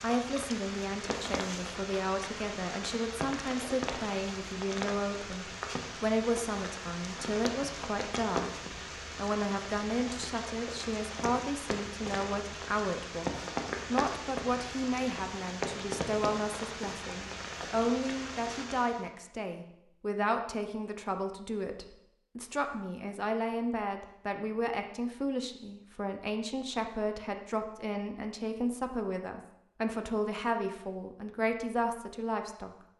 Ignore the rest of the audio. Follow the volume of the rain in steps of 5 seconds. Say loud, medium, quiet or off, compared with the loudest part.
loud, loud, loud, loud, off, off, off.